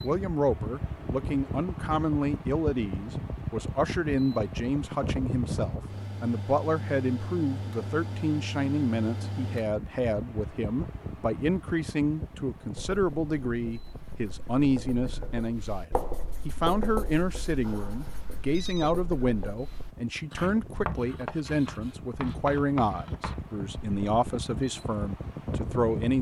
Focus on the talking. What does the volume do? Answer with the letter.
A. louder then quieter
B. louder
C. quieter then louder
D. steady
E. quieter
D.